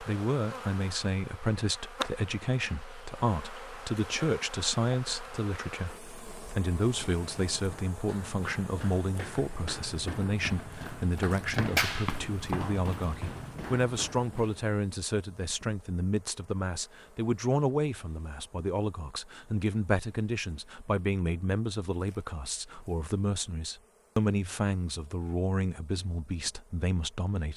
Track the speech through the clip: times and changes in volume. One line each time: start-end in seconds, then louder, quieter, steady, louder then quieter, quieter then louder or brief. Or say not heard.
0.0-27.5 steady.